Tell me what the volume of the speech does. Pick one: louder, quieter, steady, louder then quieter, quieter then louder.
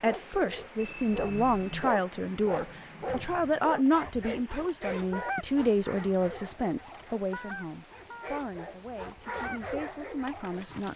quieter.